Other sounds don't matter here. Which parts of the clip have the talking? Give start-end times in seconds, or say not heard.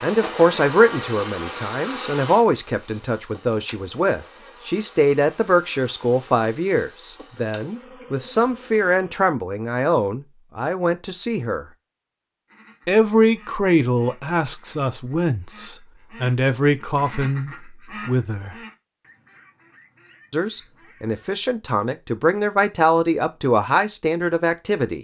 0.0-11.7, 12.8-18.6, 20.3-24.9.